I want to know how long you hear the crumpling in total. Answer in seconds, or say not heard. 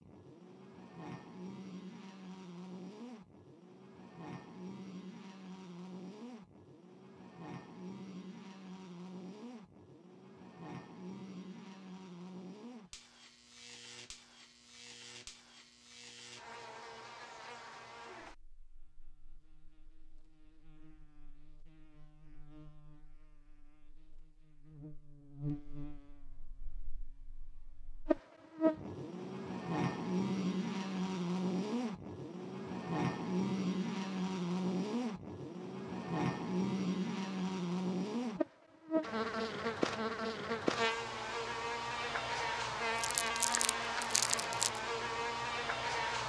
2 s.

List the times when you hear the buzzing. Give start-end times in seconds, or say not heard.
0.0-46.2.